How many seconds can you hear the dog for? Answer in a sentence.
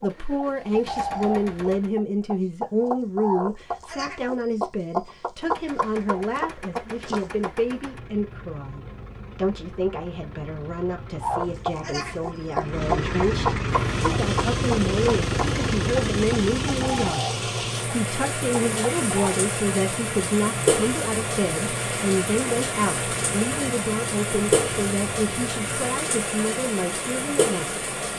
You can't hear the dog here.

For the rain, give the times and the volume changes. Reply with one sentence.
You can hear the rain from 13.7 to 28.1 s, getting louder.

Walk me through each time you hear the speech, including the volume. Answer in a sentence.
The speech can be heard from 0.0 to 27.8 s, at a steady volume.